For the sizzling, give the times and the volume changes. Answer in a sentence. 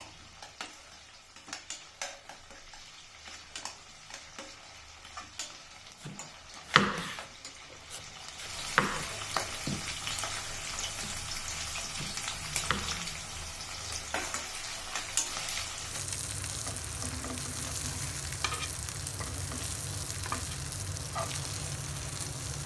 The sizzling can be heard from 0.0 to 22.6 s, getting louder.